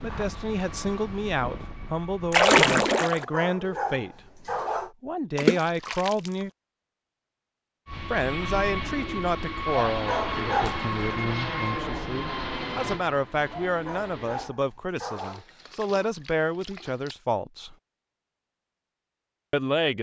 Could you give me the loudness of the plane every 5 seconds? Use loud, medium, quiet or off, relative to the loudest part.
medium, loud, loud, off.